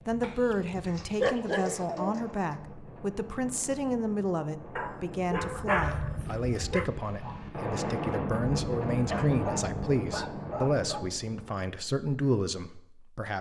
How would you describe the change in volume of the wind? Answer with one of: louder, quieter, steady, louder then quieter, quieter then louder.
louder.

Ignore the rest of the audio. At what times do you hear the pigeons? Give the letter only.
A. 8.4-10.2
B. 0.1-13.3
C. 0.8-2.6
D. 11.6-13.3
C.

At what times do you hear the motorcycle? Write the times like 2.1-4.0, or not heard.
not heard.